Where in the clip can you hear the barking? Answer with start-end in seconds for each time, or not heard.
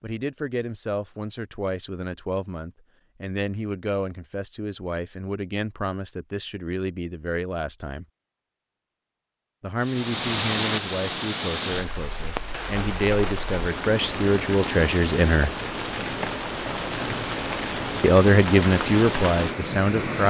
not heard.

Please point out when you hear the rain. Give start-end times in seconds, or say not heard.
9.8-20.2.